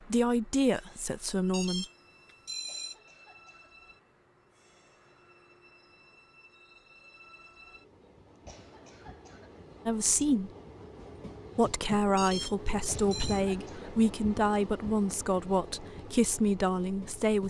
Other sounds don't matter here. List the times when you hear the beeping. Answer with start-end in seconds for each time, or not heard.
1.5-3.0, 12.2-13.4.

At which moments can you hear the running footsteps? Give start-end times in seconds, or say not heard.
not heard.